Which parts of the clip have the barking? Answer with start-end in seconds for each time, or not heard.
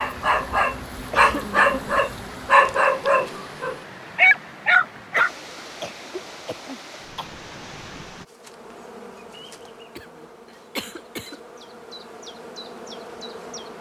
0.0-5.3.